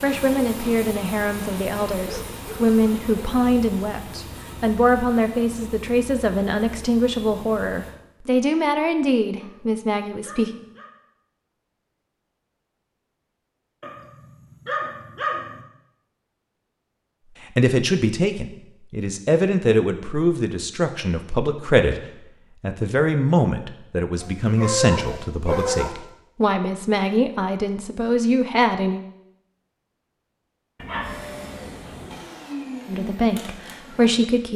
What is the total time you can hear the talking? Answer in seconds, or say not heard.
24 s.